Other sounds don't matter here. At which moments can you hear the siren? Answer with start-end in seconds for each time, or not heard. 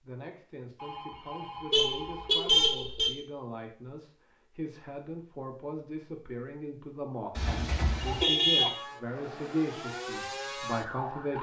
8.6-11.3.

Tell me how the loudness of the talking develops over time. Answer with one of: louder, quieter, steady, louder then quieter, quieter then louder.
louder.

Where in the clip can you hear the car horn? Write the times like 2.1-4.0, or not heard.
1.7-3.1, 7.3-8.7.